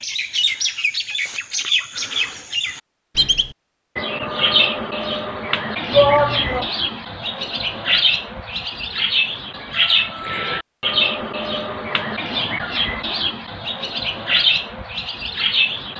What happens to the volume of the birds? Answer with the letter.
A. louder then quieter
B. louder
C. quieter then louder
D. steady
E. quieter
D.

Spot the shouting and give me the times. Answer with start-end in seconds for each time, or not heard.
5.9-6.7.